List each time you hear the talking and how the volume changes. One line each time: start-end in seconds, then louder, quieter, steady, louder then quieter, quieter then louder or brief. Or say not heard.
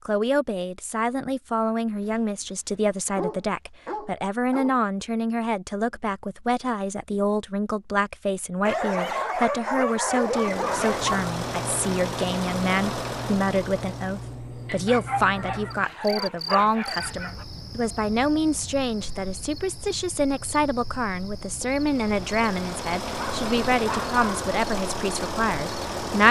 0.1-26.2 steady.